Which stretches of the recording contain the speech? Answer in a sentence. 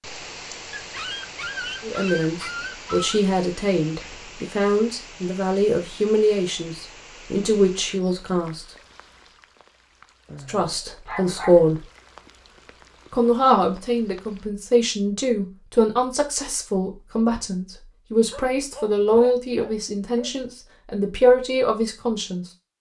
You can hear the speech from 1.8 to 8.7 s, from 10.4 to 11.8 s and from 13.1 to 22.4 s.